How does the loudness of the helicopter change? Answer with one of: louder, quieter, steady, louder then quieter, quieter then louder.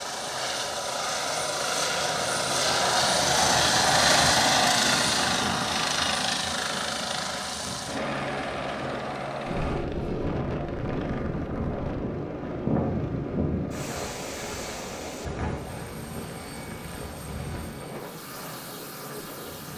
quieter.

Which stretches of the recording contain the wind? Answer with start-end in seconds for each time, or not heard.
9.4-19.7.